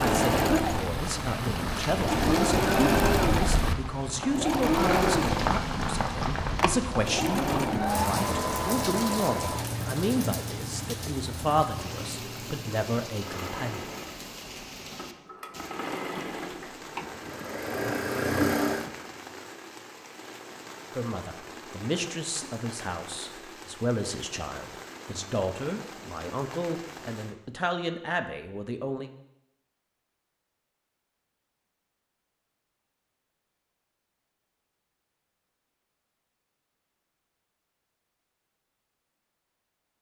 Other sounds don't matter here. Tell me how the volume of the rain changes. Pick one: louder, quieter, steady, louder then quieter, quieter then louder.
quieter.